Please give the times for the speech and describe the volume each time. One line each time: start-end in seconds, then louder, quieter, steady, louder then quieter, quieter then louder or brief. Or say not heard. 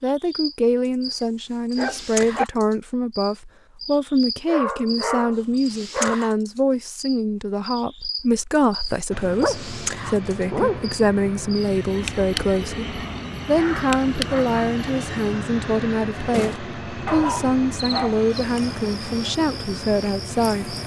0.0-20.8 steady.